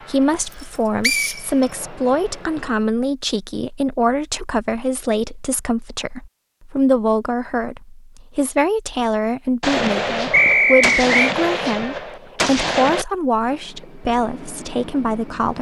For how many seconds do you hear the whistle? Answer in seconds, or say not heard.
2 s.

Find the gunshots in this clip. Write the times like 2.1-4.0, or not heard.
9.6-13.1.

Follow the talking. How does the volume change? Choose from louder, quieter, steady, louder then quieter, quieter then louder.
steady.